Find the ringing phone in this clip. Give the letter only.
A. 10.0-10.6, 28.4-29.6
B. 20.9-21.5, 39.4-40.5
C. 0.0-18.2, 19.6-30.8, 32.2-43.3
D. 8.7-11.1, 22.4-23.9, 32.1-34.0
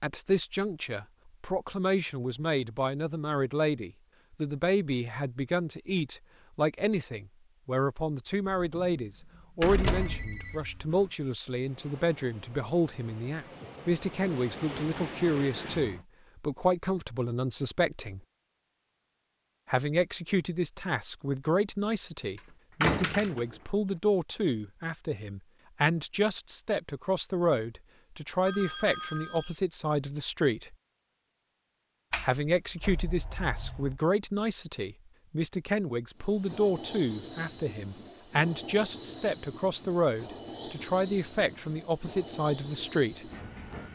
A.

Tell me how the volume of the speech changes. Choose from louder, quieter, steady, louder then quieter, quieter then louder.
steady.